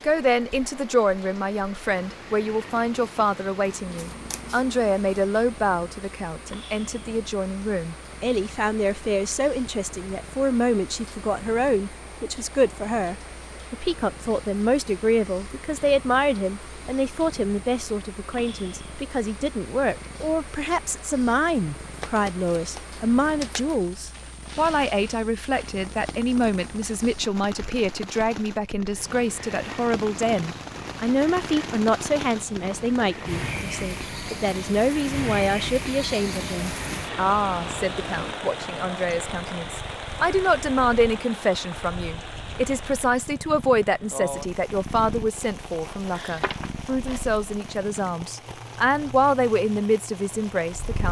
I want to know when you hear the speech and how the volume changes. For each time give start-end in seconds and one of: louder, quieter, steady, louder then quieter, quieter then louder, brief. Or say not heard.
0.0-51.0 steady.